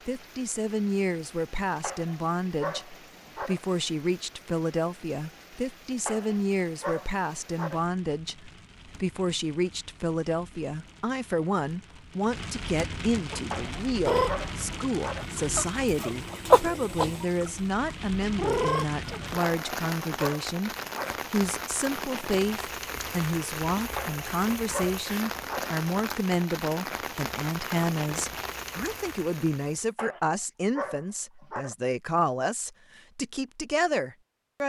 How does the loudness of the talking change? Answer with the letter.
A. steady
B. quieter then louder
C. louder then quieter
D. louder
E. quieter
A.